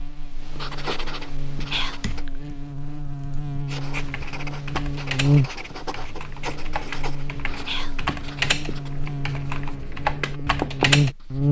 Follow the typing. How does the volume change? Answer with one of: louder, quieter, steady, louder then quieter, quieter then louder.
louder.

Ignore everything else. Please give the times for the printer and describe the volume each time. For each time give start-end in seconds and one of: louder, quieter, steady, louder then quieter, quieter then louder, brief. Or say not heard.
not heard.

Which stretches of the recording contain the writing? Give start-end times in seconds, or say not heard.
0.0-2.2, 3.6-11.4.